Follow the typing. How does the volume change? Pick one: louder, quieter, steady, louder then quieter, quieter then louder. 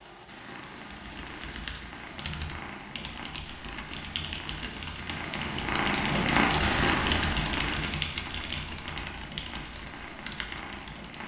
louder then quieter.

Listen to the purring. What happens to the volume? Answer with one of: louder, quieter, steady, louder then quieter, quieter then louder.
louder then quieter.